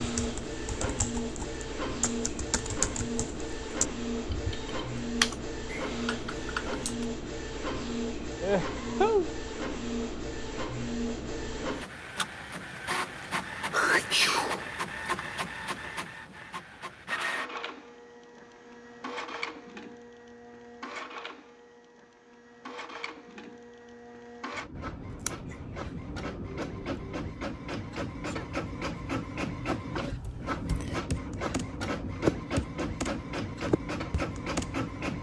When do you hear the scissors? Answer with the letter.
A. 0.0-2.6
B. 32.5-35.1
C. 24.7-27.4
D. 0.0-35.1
C.